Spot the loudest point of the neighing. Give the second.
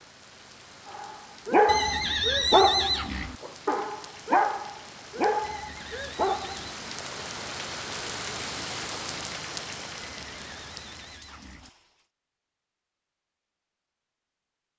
3 s.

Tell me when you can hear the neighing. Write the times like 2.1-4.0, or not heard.
1.6-3.4, 5.4-6.7, 10.1-11.7.